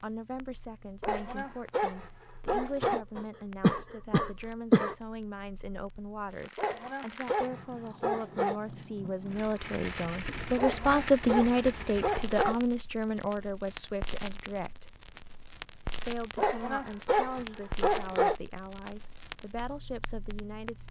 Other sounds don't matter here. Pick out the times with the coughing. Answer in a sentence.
You can hear the coughing from 2.8 to 5.0 s.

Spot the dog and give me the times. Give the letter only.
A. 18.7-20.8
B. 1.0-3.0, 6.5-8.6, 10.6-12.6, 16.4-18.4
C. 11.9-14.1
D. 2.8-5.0
B.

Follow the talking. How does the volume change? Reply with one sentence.
The loudness of the talking goes up, then down.